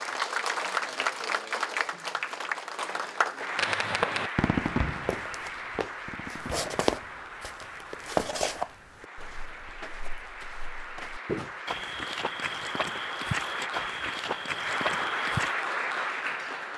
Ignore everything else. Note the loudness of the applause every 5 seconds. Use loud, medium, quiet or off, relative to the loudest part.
loud, medium, medium, loud.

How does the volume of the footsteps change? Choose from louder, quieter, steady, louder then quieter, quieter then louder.
quieter then louder.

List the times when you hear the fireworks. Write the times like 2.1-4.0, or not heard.
3.5-7.5.